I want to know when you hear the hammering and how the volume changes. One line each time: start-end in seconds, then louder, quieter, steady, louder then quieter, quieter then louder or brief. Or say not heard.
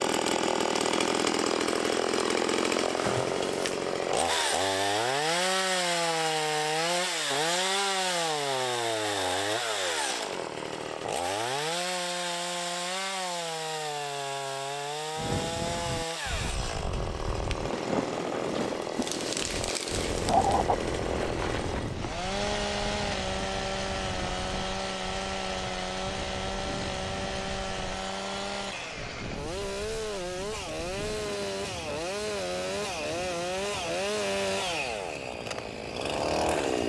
not heard.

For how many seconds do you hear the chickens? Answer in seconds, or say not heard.
2 s.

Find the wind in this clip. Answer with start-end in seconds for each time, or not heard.
15.2-36.8.